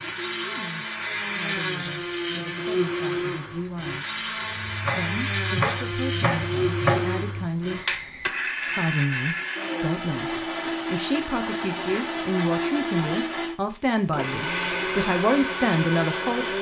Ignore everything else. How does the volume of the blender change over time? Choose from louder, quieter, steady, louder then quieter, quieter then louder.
steady.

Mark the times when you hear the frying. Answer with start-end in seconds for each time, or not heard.
not heard.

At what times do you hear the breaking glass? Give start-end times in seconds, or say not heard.
not heard.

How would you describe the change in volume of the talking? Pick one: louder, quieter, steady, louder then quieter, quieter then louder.
louder.